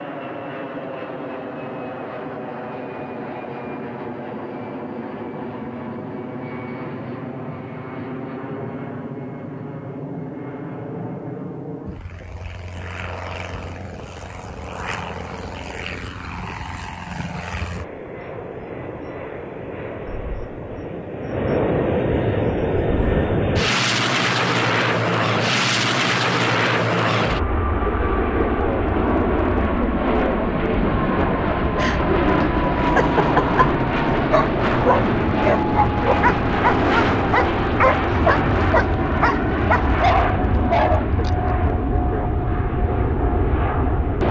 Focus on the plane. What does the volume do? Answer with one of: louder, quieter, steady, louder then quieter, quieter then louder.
louder.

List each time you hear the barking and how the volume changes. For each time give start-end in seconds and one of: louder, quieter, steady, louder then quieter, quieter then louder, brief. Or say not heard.
31.8-41.3 steady.